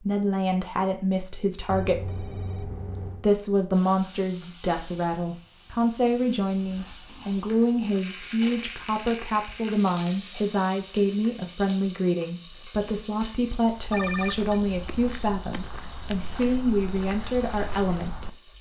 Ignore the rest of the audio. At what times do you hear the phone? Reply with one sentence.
The phone can be heard from 1.7 to 3.2 s and from 13.9 to 14.6 s.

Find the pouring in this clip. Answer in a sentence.
The pouring can't be heard in this clip.